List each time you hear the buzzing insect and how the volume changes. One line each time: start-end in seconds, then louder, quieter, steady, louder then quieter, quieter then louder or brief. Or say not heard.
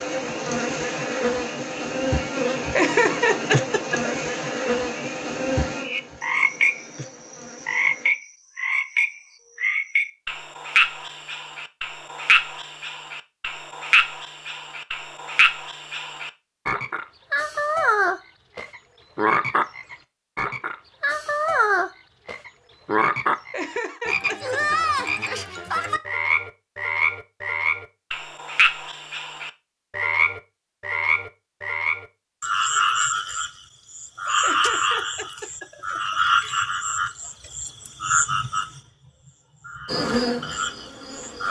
0.0-8.1 quieter
39.9-41.4 brief.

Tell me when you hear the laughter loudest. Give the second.
3 s.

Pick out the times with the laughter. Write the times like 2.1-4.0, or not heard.
2.8-4.2, 23.5-24.9, 34.4-36.6.